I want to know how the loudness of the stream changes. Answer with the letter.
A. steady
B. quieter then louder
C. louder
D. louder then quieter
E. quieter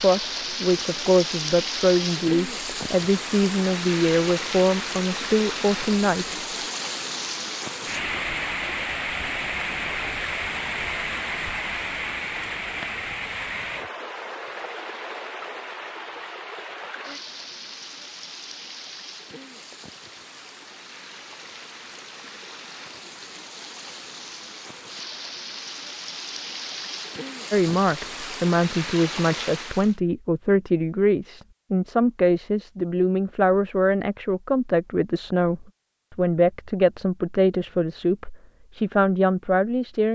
B.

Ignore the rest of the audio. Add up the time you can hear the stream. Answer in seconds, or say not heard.
30 s.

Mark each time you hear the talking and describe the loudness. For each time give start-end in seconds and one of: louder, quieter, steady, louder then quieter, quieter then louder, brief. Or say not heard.
0.0-6.3 steady
27.5-40.1 steady.